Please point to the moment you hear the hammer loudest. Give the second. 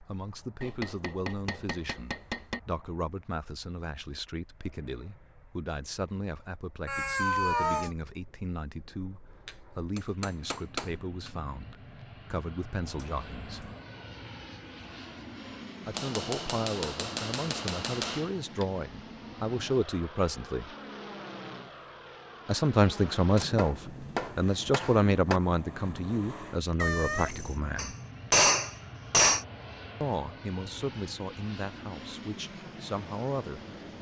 28 s.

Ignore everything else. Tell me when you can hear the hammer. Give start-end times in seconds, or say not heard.
0.6-2.6, 9.4-11.3, 15.9-18.6, 23.4-25.4, 27.8-29.4.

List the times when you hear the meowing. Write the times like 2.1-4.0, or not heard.
6.8-8.0, 12.8-13.8, 26.8-27.6.